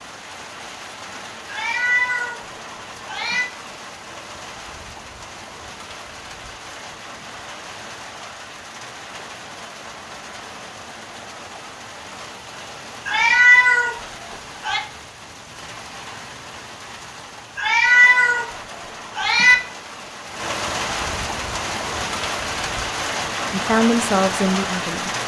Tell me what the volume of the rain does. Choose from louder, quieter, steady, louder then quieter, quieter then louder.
louder.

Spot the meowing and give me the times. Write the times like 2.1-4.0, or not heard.
1.4-2.4, 3.0-3.5, 13.1-14.8, 17.6-18.5, 19.1-19.6.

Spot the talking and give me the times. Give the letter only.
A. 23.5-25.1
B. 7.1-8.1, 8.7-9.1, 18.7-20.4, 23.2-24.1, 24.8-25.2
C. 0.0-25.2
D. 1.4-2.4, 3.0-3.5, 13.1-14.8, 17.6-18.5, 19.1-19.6
A.